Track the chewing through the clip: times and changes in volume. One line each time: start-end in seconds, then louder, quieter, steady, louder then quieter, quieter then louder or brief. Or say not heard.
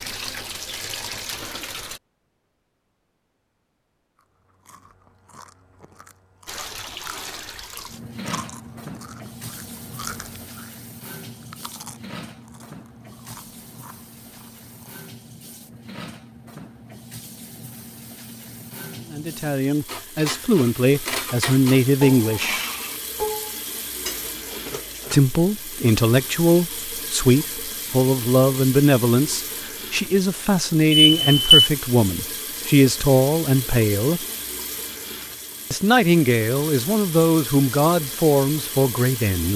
4.2-15.1 louder then quieter.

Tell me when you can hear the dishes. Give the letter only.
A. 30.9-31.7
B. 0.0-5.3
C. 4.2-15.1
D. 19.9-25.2
D.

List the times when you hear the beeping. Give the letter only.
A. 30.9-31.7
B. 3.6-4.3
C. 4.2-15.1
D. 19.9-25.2
A.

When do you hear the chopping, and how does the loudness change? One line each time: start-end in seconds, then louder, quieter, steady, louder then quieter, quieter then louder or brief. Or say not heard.
not heard.